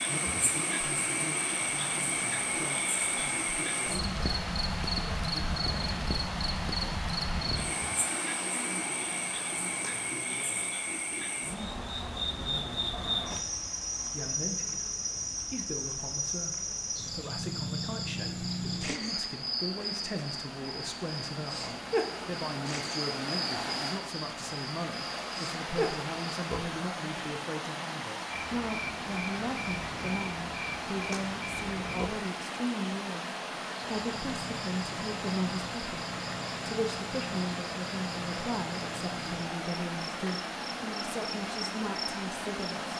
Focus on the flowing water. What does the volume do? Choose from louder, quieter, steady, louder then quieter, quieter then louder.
quieter then louder.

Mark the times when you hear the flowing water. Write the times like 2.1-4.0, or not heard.
0.0-42.9.